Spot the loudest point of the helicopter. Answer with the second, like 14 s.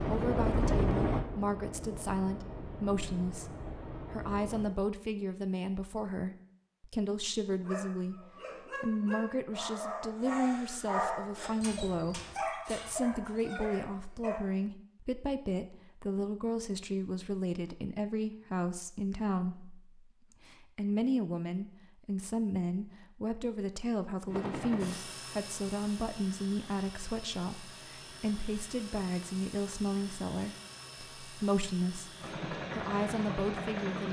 1 s.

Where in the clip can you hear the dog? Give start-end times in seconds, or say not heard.
7.5-14.4.